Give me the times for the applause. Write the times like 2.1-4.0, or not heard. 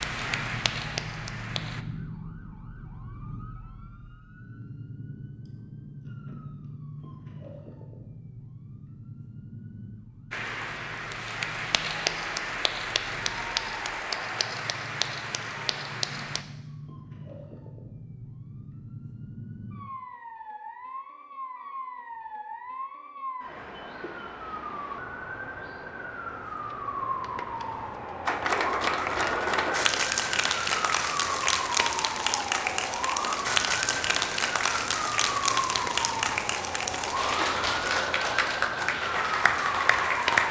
0.0-1.9, 10.3-16.4, 28.2-40.4.